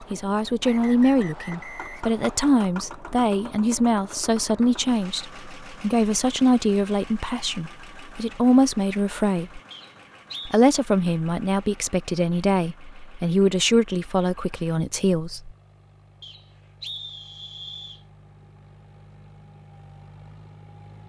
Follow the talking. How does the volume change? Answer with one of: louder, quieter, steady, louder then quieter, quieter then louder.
steady.